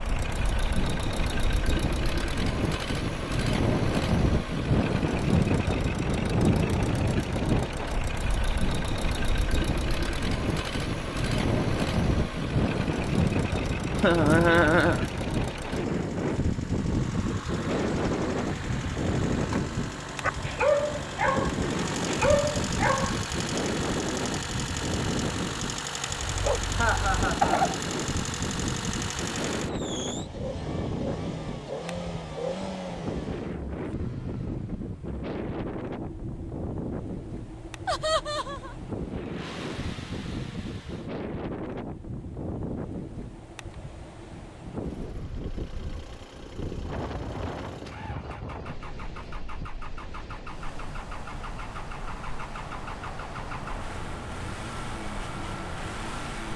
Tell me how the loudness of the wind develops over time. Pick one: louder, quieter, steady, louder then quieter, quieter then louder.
quieter.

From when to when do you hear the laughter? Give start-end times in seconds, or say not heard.
13.9-15.1, 26.8-27.5, 37.9-38.8.